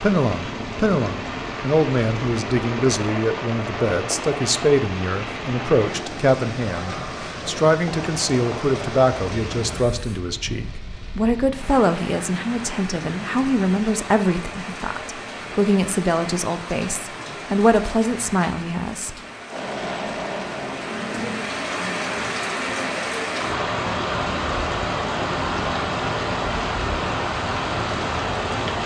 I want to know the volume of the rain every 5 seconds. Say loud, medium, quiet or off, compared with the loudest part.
medium, medium, medium, medium, loud, loud.